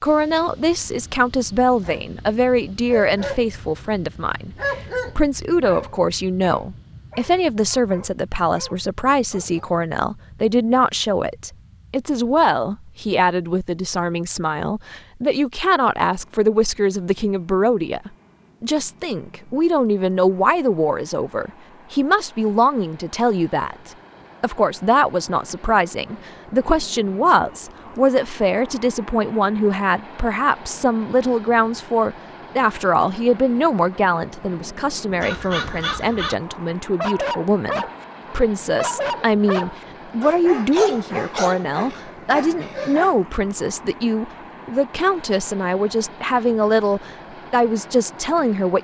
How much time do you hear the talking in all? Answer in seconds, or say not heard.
48 s.